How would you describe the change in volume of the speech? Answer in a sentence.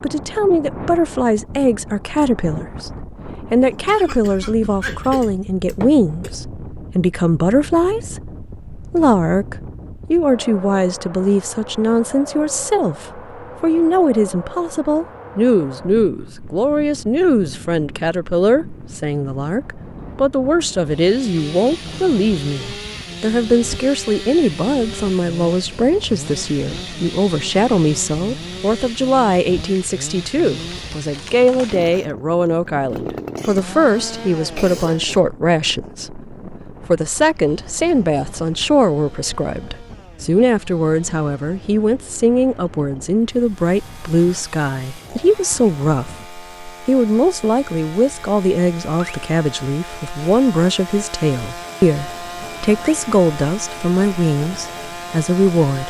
The loudness of the speech stays about the same.